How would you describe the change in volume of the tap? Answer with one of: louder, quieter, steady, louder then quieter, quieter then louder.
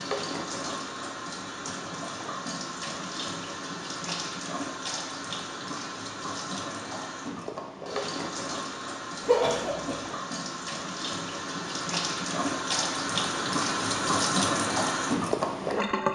louder.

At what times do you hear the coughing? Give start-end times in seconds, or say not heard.
9.2-10.0.